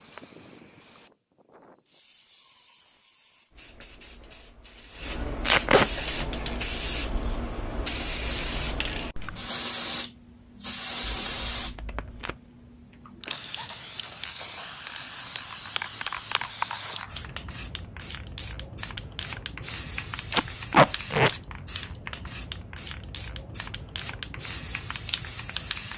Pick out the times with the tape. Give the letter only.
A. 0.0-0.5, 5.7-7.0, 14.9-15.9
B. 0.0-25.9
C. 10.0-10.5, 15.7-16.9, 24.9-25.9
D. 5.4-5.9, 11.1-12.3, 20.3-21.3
D.